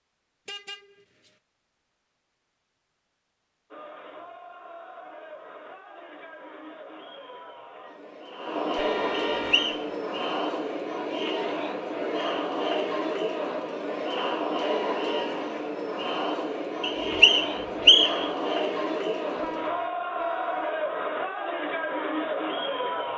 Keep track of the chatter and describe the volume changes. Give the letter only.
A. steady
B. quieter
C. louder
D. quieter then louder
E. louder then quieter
C.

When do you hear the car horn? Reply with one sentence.
You can hear the car horn from 0.5 to 1.3 s, from 8.8 to 9.8 s and from 19.4 to 20.8 s.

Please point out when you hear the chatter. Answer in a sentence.
You can hear the chatter from 3.7 to 23.1 s.